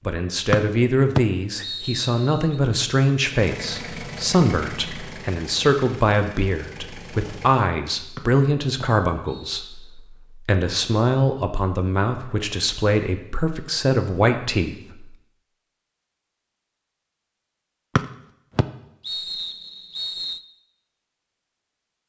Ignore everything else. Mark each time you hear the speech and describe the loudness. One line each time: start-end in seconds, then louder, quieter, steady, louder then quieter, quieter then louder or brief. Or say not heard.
0.1-15.2 steady.